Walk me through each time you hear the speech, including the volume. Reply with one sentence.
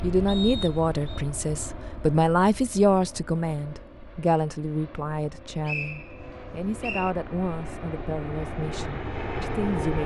The speech can be heard from 0.0 to 10.0 s, getting quieter.